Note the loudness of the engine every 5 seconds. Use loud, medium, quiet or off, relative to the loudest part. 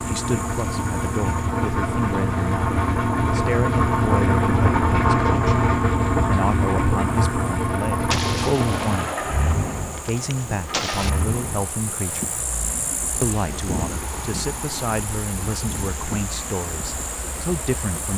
loud, loud, quiet, quiet.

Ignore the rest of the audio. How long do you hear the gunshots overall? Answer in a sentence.
You can hear the gunshots for 3 seconds altogether.